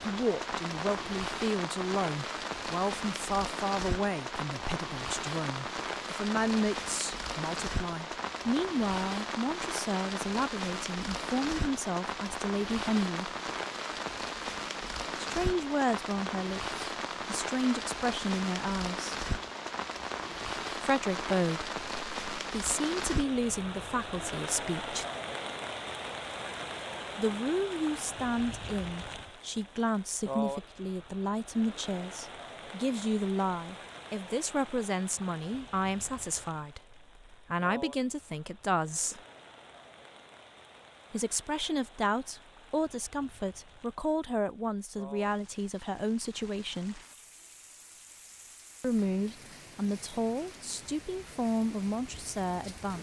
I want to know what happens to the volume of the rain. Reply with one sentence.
The volume of the rain goes down.